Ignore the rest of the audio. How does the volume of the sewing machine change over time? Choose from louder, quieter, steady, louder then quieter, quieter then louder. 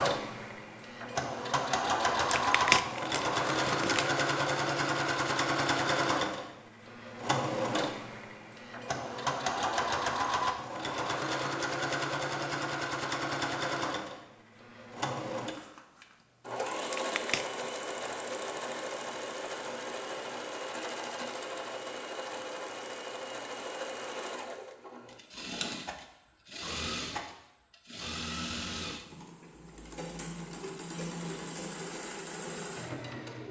quieter.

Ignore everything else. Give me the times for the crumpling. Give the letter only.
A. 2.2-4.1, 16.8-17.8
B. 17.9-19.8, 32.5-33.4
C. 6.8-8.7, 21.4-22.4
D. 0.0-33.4
A.